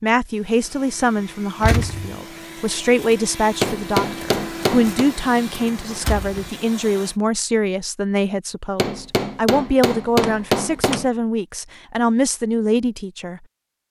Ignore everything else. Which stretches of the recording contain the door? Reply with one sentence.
The door can be heard from 1.6 to 2.1 s, from 6.0 to 6.5 s and from 10.2 to 11.1 s.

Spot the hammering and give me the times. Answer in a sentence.
The hammering can be heard from 3.6 to 5.1 s and from 8.8 to 11.1 s.